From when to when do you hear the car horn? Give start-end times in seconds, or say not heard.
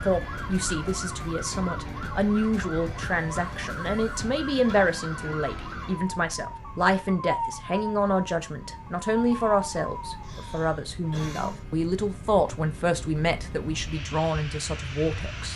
not heard.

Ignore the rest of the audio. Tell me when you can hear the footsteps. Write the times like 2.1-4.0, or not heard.
not heard.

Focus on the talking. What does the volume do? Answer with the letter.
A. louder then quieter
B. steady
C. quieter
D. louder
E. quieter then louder
B.